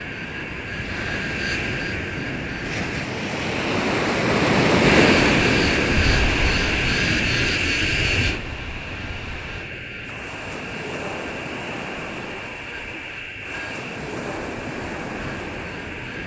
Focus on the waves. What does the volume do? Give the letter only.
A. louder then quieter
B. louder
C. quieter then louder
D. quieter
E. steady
A.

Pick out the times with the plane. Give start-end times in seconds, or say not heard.
0.0-3.0, 4.8-16.2.